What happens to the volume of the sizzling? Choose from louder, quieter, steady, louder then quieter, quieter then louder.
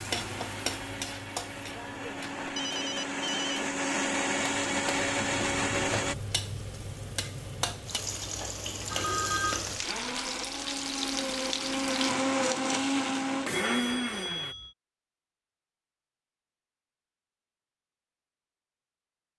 quieter then louder.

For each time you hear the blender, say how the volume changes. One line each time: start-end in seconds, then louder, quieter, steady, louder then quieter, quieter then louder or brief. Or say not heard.
0.0-6.2 louder
9.8-14.6 louder.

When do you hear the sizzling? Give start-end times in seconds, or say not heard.
0.0-12.2.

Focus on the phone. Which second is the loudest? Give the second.
9 s.